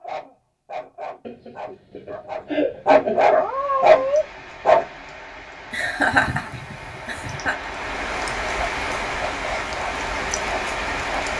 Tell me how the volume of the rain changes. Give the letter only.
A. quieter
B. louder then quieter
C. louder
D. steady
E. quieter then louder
C.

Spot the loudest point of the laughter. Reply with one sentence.
The loudest moment of the laughter is at 6 seconds.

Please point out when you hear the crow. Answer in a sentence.
You can't hear the crow here.